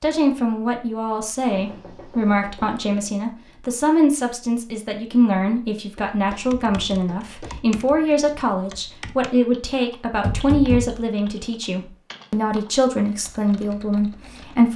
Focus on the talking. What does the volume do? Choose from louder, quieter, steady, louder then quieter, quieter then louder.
steady.